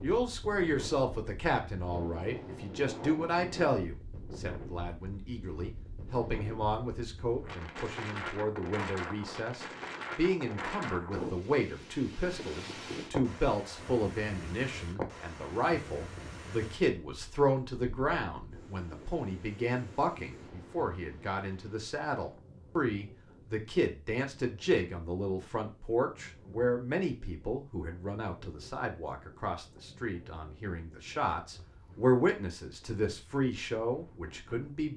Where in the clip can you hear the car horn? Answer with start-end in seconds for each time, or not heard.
not heard.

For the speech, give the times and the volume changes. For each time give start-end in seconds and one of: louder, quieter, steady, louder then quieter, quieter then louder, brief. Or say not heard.
0.0-34.9 steady.